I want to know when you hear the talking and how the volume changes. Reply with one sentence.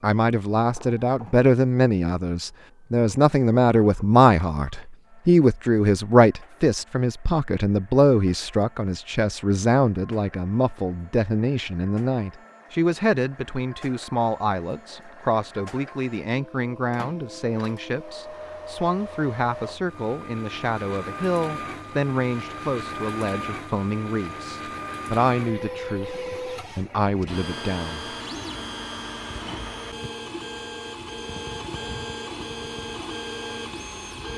The talking can be heard from 0.0 to 28.1 s, getting quieter.